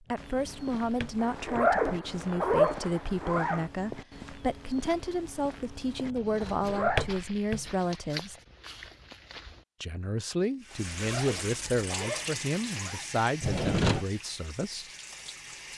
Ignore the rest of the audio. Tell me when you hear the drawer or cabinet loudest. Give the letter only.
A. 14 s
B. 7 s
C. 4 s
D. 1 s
A.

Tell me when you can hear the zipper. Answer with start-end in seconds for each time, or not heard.
1.2-3.6, 6.4-7.0, 10.7-13.1.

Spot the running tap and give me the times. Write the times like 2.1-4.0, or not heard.
10.6-15.7.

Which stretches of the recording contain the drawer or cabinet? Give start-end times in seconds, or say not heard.
0.1-1.7, 6.0-7.7, 13.4-14.1.